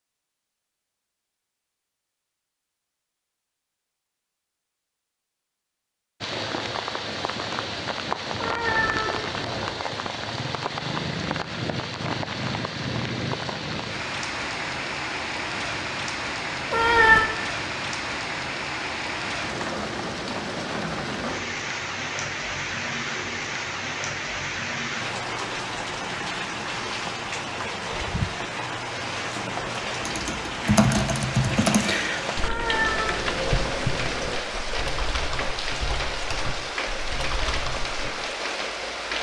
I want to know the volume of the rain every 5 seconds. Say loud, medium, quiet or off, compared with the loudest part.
off, loud, loud, loud, loud, loud, loud, loud.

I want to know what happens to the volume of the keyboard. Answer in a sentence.
The loudness of the keyboard goes down.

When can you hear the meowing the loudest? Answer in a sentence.
The loudest moment of the meowing is at 17 seconds.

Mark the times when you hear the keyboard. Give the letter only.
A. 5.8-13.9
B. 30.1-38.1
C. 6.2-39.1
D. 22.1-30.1
B.